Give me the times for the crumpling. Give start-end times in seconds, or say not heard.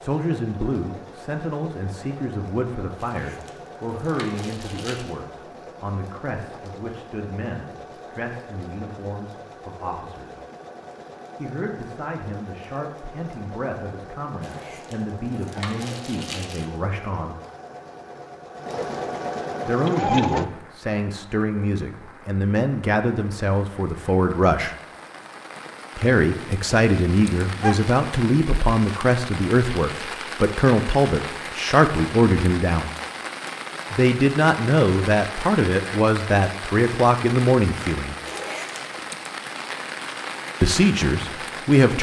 3.0-5.2, 14.4-16.6, 38.2-39.0.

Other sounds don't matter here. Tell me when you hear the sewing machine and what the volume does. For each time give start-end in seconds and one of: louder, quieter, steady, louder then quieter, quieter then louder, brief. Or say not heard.
0.0-20.4 louder.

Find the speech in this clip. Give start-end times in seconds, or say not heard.
0.0-10.3, 11.3-17.4, 19.6-24.8, 25.9-32.9, 33.9-38.1, 40.6-41.9.